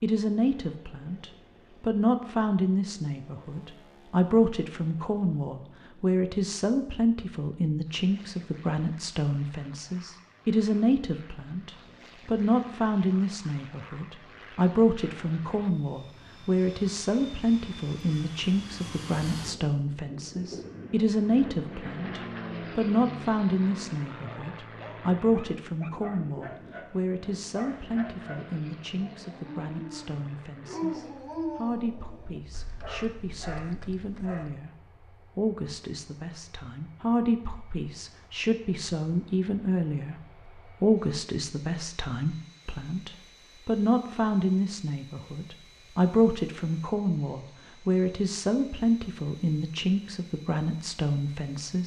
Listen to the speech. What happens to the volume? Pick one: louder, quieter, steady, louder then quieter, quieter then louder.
steady.